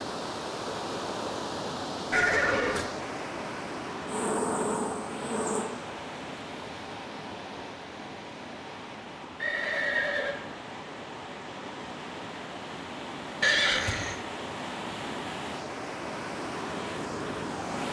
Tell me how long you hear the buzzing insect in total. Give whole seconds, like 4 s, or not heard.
2 s.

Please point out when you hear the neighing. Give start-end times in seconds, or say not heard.
2.1-2.9, 9.4-10.3, 13.4-14.2.